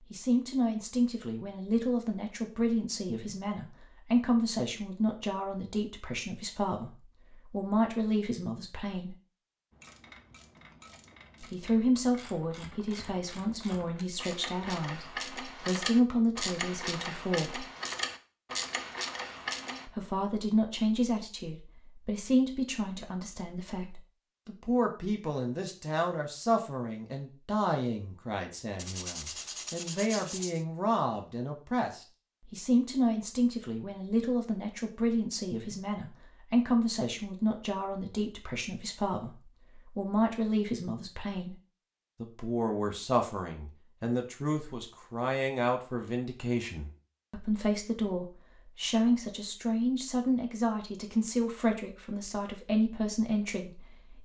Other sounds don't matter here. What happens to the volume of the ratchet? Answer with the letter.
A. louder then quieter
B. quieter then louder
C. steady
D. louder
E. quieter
D.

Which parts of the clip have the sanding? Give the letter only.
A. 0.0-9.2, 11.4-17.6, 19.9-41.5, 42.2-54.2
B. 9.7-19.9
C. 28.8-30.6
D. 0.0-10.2
C.